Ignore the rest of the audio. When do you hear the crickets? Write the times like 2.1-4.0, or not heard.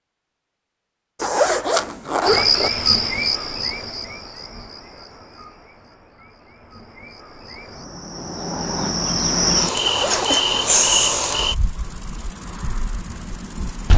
2.2-13.9.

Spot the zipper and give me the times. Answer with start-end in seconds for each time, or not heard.
1.2-2.7, 9.8-10.3.